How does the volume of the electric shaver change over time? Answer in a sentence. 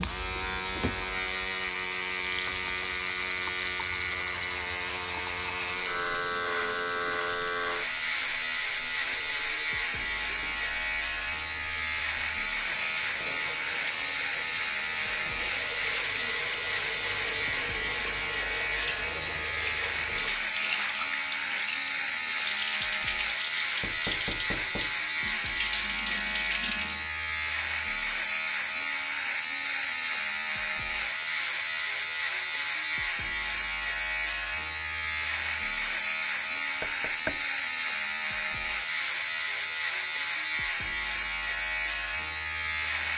The loudness of the electric shaver stays about the same.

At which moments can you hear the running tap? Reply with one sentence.
You can hear the running tap from 0.0 to 27.1 s.